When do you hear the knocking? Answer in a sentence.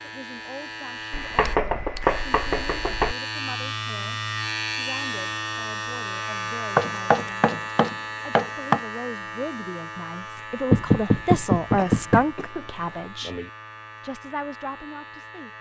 You can hear the knocking from 1.1 to 3.1 s, from 6.8 to 8.8 s and from 10.7 to 12.2 s.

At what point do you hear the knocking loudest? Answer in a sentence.
The volume of the knocking peaks at 11 seconds.